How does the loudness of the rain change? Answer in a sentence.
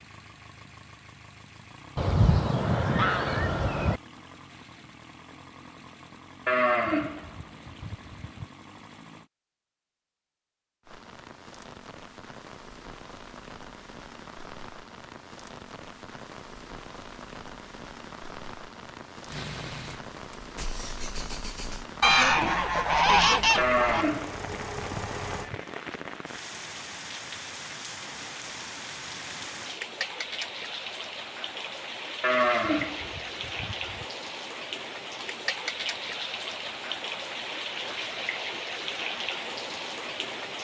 The volume of the rain goes up.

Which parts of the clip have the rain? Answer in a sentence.
You can hear the rain from 10.8 to 40.5 s.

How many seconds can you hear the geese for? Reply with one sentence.
The geese can be heard for 4 seconds in total.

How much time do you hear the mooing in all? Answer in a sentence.
You can hear the mooing for 6 seconds altogether.